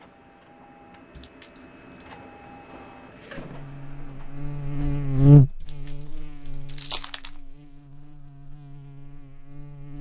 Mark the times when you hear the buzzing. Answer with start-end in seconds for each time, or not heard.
3.4-9.9.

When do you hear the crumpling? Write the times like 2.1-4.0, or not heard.
1.1-2.2, 5.6-7.3.